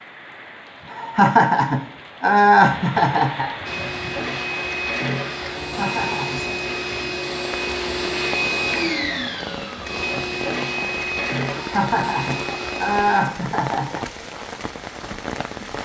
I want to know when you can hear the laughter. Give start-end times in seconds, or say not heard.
0.9-3.5, 5.6-6.4, 11.6-14.0.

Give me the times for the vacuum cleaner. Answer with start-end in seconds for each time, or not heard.
3.6-13.2.